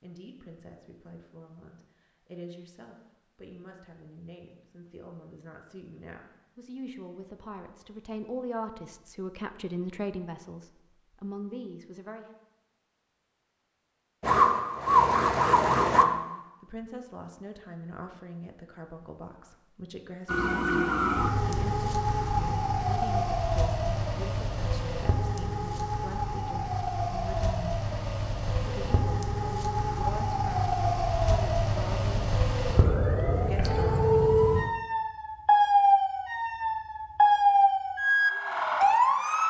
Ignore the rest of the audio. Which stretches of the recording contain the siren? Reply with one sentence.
You can hear the siren from 14.2 to 16.1 s and from 20.2 to 39.4 s.